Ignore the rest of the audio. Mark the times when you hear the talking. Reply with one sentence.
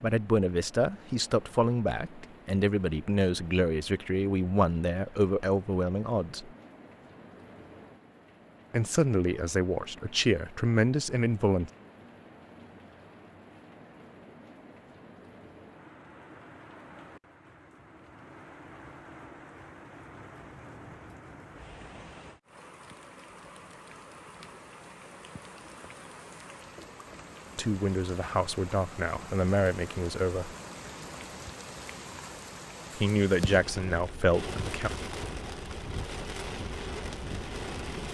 The talking can be heard from 0.0 to 6.5 s, from 8.7 to 11.7 s, from 27.6 to 30.6 s and from 33.0 to 34.9 s.